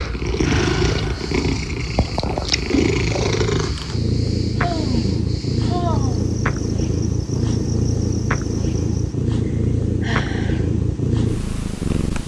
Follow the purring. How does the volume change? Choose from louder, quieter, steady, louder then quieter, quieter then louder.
steady.